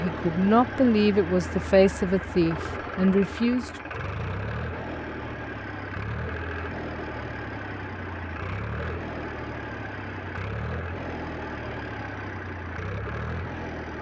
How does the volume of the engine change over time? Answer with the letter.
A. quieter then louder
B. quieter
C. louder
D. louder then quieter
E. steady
E.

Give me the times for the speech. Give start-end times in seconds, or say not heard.
0.0-3.7.